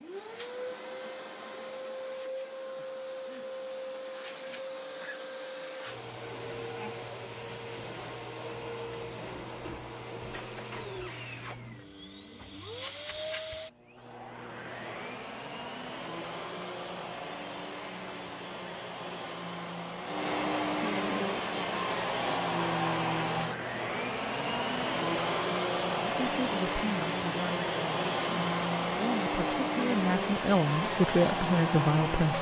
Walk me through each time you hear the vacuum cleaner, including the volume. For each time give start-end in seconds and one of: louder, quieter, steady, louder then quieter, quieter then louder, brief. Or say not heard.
0.0-32.3 louder.